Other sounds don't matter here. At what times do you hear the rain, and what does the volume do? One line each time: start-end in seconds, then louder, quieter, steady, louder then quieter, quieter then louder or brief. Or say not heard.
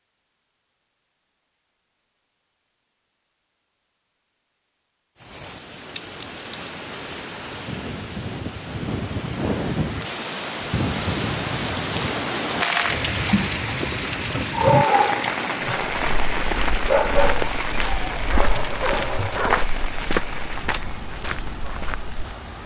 5.2-22.6 louder then quieter.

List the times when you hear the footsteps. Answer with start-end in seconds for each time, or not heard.
15.9-22.4.